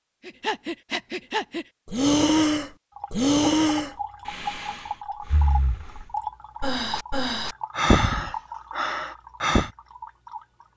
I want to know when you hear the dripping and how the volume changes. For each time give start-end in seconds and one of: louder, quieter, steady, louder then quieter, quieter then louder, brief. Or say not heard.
2.9-10.7 quieter.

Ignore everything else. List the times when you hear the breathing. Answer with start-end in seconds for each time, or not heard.
0.2-9.7.